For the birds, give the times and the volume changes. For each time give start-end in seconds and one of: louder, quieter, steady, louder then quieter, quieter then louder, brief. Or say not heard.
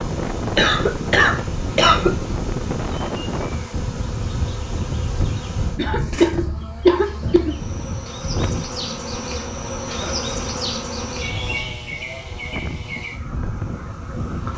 not heard.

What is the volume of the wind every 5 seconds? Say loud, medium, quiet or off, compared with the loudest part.
loud, loud, medium.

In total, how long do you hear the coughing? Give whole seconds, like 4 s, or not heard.
4 s.